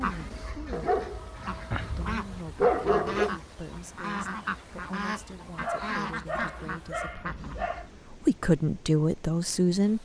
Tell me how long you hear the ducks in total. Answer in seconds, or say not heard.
8 s.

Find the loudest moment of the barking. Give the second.
3 s.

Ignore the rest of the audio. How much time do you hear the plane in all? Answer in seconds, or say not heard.
not heard.